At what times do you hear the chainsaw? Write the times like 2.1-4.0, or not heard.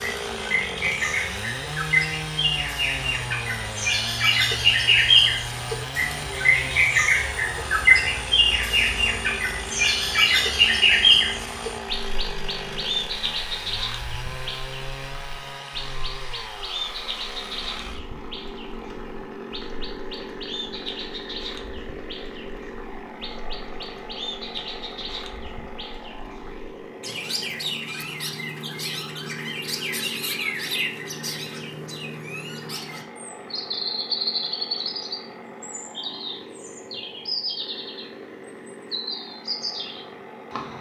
0.0-40.7.